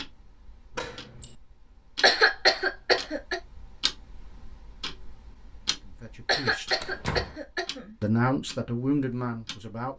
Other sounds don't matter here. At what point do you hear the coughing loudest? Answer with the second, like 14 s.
2 s.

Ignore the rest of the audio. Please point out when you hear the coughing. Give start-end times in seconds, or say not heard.
2.0-3.4, 6.2-8.0.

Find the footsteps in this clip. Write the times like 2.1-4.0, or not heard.
not heard.